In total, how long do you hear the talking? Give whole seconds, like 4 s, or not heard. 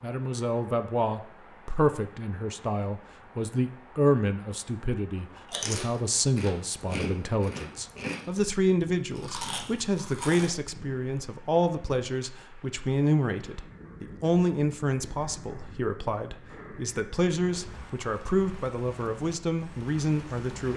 21 s.